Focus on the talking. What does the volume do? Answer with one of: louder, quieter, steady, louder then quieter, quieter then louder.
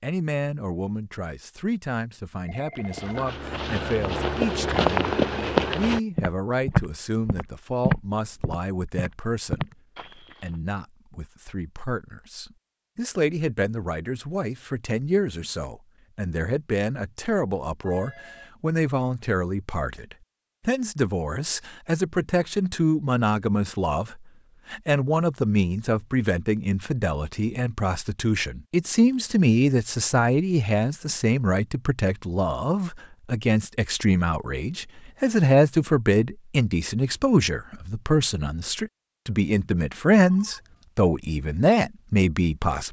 louder.